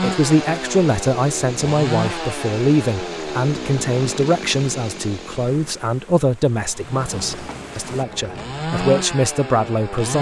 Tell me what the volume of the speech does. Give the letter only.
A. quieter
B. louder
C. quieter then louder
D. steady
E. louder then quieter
D.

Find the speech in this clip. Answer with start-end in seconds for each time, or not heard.
0.0-10.1.